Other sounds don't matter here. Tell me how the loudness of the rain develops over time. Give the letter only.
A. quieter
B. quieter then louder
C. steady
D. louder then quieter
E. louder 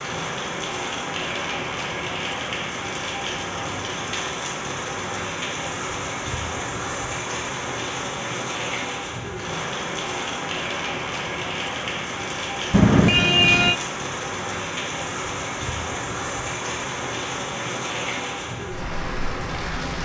C.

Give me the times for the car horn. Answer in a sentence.
You can hear the car horn from 12.7 to 13.8 s.